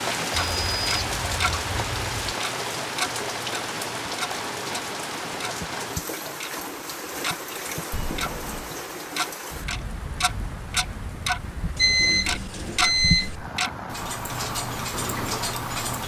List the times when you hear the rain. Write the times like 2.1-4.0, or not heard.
0.0-16.0.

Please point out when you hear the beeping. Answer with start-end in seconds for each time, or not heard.
0.3-2.1, 7.9-8.7, 11.8-13.3.